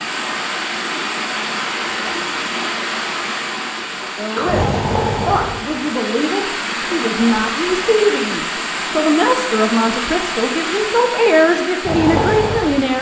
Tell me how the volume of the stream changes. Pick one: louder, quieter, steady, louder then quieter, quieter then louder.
steady.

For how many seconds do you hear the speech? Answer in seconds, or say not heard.
9 s.